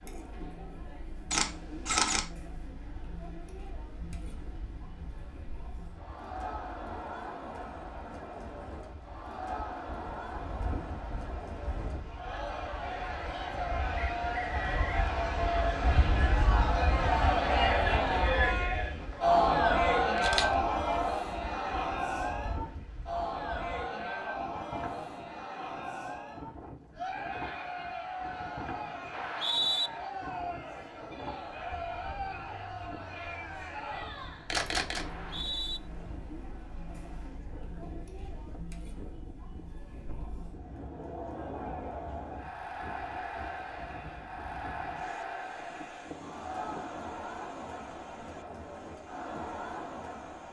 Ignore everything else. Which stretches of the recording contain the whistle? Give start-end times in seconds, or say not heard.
13.9-14.9, 29.1-29.9, 35.0-35.8.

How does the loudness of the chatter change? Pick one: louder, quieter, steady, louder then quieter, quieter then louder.
louder then quieter.